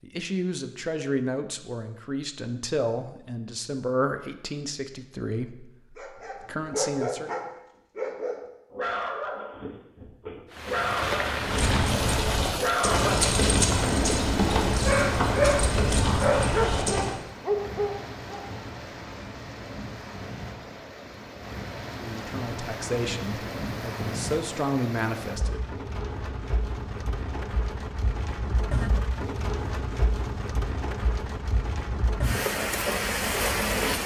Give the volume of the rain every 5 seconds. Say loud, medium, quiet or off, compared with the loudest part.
off, off, loud, medium, medium, medium, loud.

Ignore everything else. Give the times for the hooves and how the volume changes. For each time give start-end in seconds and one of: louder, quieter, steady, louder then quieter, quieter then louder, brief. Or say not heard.
11.4-17.2 steady.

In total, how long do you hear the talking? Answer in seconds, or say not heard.
11 s.